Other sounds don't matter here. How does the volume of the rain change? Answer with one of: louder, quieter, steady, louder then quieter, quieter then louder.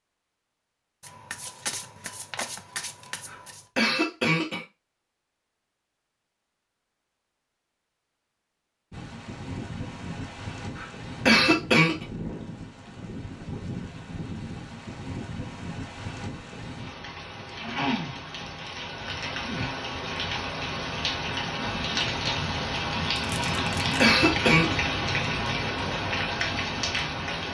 louder.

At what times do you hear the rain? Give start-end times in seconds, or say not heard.
8.9-27.4.